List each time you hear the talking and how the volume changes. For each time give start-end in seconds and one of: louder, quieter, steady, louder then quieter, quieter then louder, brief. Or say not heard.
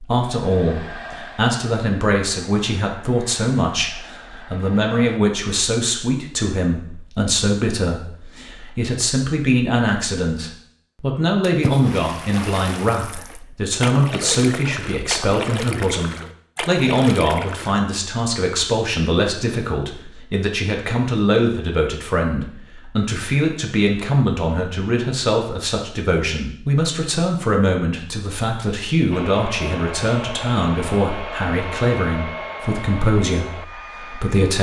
0.0-34.5 steady.